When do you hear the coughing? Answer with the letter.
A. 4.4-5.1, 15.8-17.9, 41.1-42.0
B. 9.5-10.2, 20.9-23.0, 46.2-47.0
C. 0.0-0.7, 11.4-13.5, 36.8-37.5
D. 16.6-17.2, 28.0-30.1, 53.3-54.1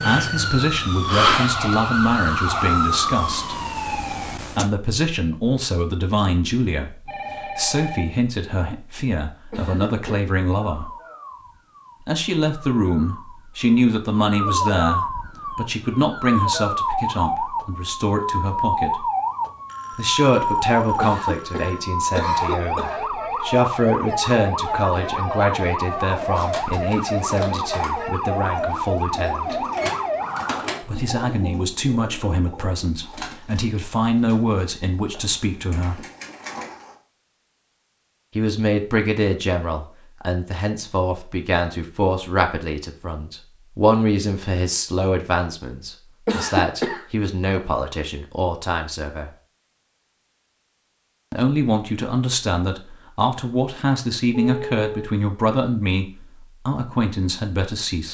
B.